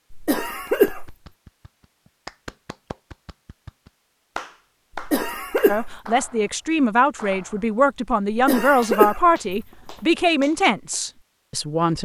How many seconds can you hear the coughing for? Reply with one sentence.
The coughing can be heard for 4 seconds in total.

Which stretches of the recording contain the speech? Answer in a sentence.
You can hear the speech from 5.7 to 11.9 s.